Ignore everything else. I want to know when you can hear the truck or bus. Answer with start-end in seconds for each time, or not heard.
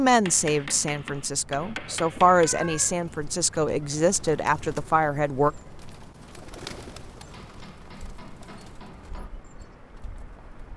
not heard.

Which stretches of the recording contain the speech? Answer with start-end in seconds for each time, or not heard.
0.0-5.5.